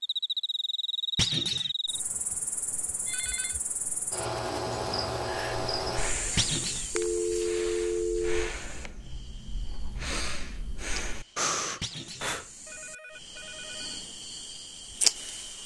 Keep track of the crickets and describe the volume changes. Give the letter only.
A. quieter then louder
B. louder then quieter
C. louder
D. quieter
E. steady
A.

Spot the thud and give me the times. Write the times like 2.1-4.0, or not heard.
1.1-1.7, 6.3-6.9, 11.8-12.3.